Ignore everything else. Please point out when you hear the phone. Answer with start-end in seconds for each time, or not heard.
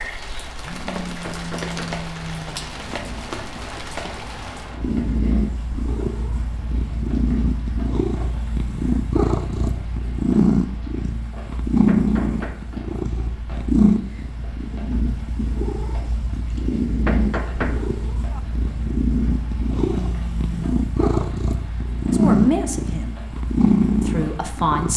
0.6-2.7, 19.9-20.6.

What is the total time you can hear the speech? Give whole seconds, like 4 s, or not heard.
2 s.